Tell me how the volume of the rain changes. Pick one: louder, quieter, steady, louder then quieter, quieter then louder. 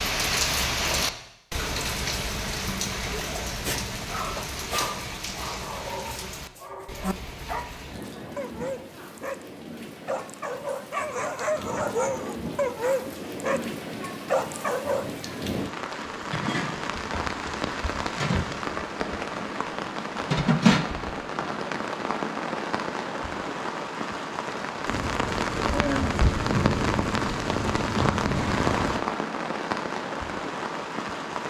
quieter then louder.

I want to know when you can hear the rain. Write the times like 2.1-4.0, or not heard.
0.0-31.4.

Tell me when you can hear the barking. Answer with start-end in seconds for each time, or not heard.
3.1-9.4, 10.1-13.7, 14.2-15.1.